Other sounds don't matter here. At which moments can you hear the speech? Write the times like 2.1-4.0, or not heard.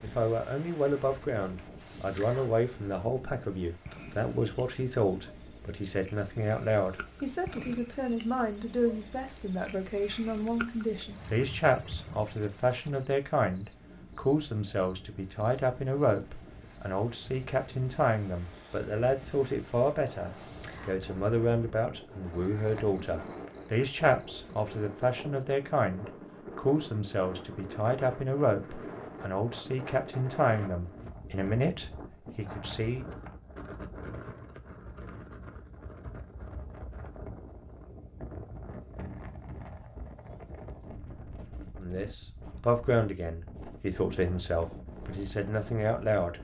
0.0-33.0, 41.8-46.3.